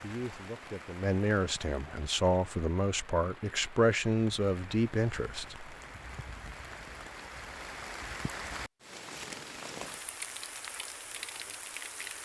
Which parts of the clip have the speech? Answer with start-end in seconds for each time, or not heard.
0.0-5.8.